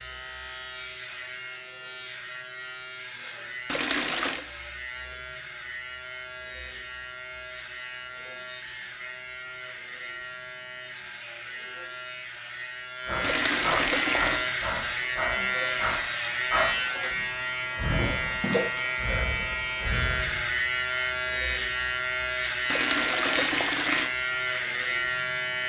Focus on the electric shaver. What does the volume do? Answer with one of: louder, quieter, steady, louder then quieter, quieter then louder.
louder.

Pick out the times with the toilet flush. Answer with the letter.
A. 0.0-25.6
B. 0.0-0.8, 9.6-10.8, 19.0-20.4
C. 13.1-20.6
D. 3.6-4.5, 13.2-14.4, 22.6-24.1
D.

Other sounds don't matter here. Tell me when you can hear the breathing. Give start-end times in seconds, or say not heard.
13.1-20.6.